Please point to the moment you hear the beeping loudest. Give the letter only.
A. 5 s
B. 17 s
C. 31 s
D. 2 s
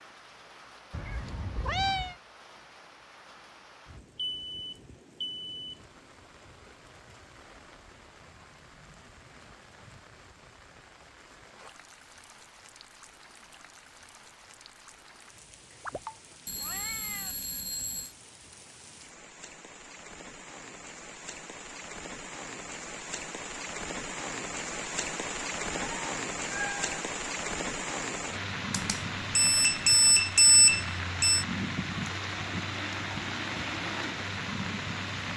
C.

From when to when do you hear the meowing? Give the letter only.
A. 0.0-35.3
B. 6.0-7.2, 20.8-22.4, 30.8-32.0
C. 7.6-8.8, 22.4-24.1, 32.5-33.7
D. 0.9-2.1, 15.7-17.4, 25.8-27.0
D.